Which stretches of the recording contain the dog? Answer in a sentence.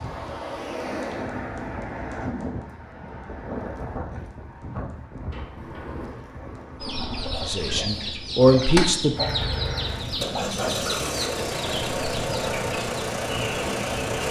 You can't hear the dog here.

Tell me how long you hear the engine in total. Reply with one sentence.
You can hear the engine for 5 seconds altogether.